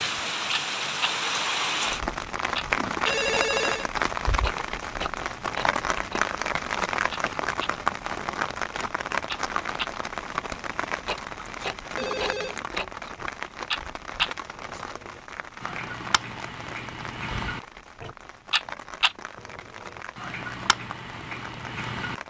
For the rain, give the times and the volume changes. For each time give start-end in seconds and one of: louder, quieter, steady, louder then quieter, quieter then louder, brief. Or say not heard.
0.0-22.2 quieter.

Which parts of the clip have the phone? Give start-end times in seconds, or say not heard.
2.8-3.9, 11.9-12.6.